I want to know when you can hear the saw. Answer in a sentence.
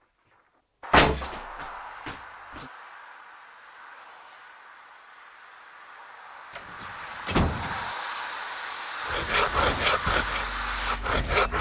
You can hear the saw from 9.1 to 11.5 s.